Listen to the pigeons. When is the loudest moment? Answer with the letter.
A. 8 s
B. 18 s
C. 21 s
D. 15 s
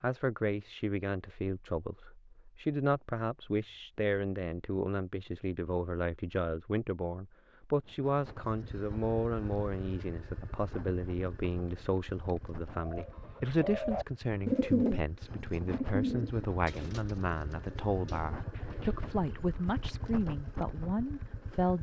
D.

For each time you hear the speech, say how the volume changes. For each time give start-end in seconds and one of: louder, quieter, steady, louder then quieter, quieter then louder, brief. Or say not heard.
0.0-21.7 steady.